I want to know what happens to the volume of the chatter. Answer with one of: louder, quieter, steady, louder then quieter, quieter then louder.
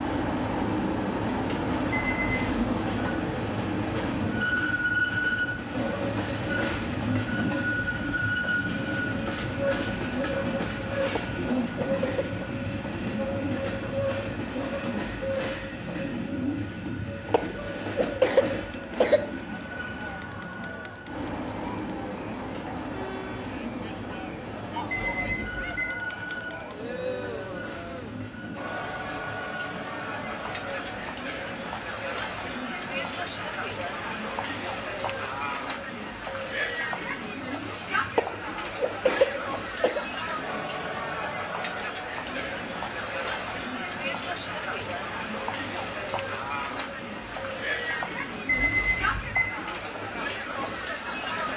louder.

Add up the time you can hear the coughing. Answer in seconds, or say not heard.
5 s.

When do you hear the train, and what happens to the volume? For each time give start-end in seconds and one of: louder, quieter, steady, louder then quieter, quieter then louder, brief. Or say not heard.
0.0-51.5 quieter.